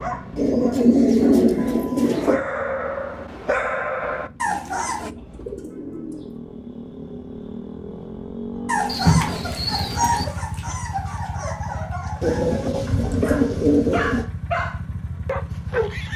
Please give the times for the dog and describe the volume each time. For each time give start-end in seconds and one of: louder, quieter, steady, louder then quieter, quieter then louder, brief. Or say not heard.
0.0-5.1 louder
8.7-16.1 quieter then louder.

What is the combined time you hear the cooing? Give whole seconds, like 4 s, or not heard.
7 s.